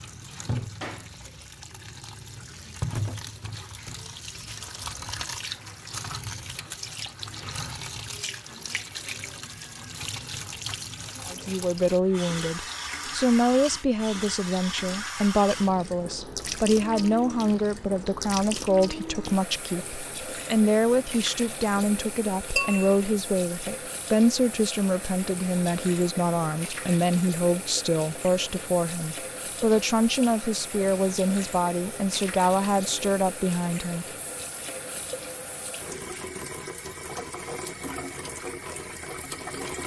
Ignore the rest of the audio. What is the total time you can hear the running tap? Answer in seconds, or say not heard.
40 s.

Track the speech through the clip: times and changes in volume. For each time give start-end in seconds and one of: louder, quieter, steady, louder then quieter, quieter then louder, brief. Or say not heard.
11.2-34.0 steady.